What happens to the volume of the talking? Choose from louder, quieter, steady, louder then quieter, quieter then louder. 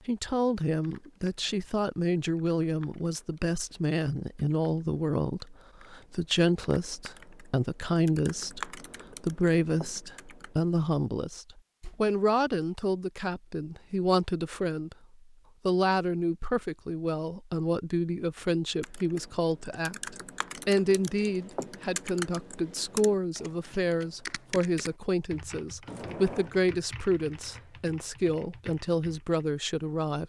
steady.